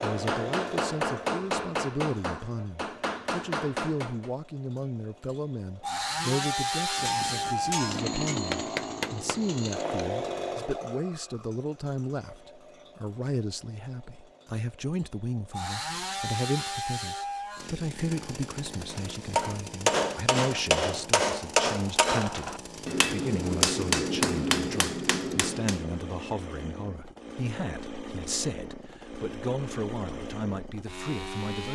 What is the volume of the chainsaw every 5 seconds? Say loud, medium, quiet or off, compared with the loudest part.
medium, loud, medium, medium, medium, medium, medium.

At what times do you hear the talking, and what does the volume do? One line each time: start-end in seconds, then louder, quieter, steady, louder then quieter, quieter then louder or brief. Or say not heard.
0.0-31.6 steady.